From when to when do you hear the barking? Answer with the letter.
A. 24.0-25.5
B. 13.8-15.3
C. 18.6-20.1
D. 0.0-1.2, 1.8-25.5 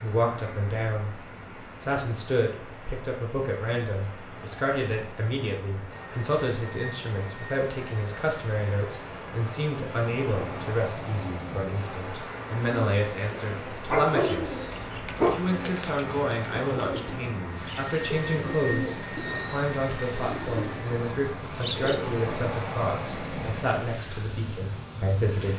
B.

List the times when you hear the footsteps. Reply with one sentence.
The footsteps can't be heard in this clip.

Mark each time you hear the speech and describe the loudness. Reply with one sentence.
You can hear the speech briefly from 0.0 to 1.2 s; and from 1.8 to 25.5 s, at a steady volume.